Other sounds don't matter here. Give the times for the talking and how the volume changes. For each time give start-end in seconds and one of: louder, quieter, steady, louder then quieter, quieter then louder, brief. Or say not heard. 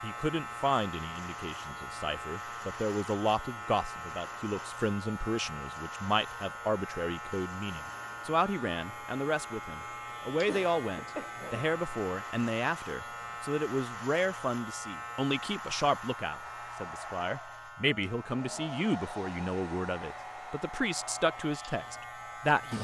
0.0-22.7 steady.